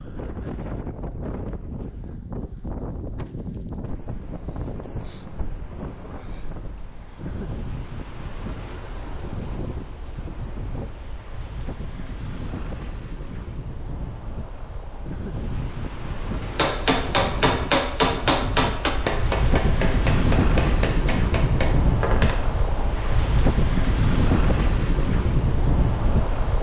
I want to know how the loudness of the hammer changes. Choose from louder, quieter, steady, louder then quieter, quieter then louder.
quieter.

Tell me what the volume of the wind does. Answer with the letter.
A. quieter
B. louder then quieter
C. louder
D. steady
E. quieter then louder
C.